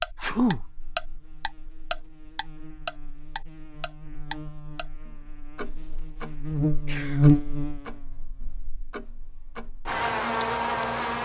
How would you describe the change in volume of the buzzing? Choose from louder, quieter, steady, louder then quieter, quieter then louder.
louder then quieter.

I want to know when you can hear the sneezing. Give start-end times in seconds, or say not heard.
0.1-0.6, 6.8-7.3.